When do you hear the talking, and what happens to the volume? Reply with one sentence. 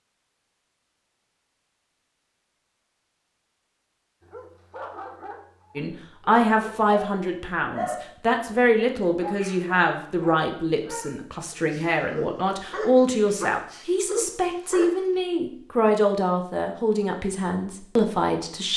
The talking can be heard from 5.8 to 18.7 s, at a steady volume.